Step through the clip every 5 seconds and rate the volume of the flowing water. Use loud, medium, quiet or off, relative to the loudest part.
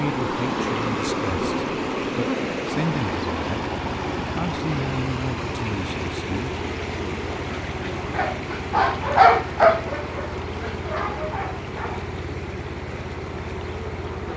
loud, medium, medium.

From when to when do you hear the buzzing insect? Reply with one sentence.
The buzzing insect can be heard from 0.0 to 14.3 s.